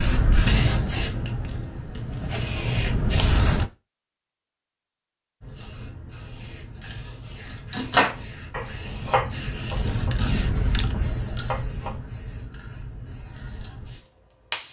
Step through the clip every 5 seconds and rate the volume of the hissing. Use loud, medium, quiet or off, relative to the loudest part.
loud, medium, medium.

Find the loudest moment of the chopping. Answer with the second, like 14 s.
8 s.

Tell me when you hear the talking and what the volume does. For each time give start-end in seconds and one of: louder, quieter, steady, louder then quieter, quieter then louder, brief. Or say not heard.
not heard.